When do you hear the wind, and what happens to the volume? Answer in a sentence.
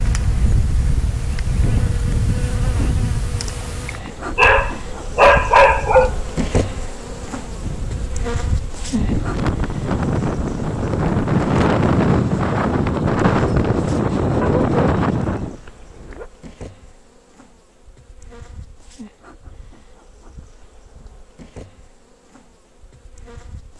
The wind can be heard from 0.0 to 15.6 s, getting quieter then louder.